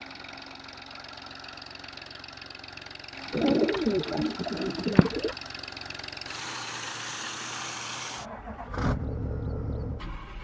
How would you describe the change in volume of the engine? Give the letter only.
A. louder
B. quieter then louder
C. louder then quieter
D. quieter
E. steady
A.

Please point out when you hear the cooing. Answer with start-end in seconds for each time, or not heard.
3.3-5.3.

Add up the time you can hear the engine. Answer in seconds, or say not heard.
10 s.